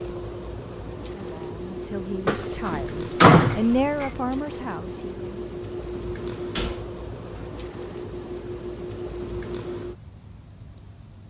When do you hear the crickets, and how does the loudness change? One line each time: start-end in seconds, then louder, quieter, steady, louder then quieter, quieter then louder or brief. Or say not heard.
0.0-11.2 steady.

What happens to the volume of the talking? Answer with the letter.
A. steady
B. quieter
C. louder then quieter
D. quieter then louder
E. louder
C.